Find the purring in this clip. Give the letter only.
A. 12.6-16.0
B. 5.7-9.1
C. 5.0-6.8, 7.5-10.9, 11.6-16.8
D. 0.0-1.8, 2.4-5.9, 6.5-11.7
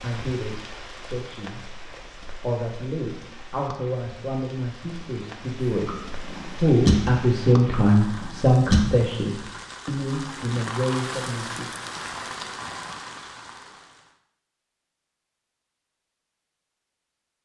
B.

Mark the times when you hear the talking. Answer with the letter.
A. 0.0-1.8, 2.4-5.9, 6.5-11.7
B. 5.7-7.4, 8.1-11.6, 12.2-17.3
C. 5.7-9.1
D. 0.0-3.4
A.